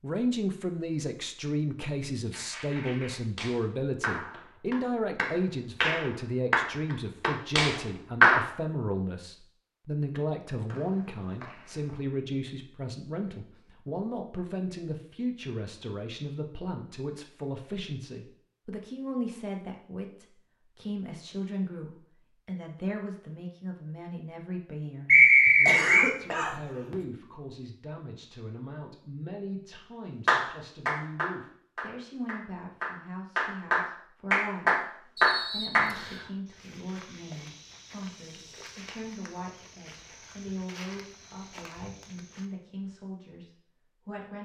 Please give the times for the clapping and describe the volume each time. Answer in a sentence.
You can hear the clapping from 2.3 to 8.4 s, getting louder; and from 30.2 to 35.9 s, getting quieter then louder.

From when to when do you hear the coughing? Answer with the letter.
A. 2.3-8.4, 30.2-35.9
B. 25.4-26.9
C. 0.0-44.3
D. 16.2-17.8
B.